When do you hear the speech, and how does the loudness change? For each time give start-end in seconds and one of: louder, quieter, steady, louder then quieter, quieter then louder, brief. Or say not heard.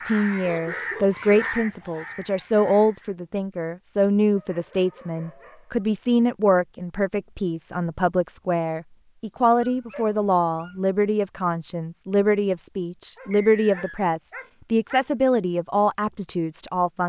0.1-17.0 steady.